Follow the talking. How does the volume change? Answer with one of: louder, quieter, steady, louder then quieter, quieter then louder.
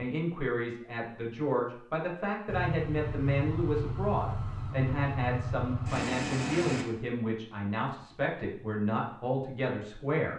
steady.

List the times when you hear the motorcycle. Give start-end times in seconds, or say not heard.
2.5-6.8.